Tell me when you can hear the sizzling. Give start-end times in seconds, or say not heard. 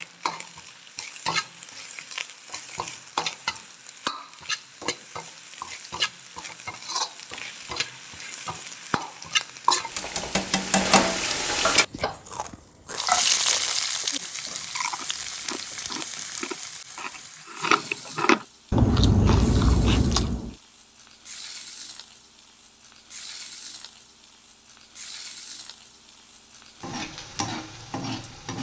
0.0-28.5.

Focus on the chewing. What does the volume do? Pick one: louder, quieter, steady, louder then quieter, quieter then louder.
louder.